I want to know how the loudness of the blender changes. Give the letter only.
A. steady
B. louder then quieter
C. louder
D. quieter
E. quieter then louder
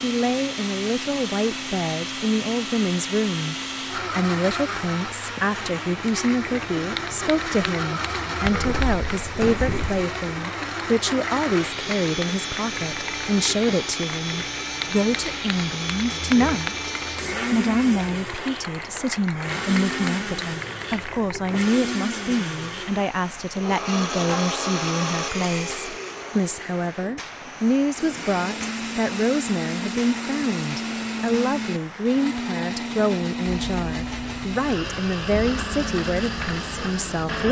A.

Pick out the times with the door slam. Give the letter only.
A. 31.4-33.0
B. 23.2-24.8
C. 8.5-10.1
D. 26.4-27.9
C.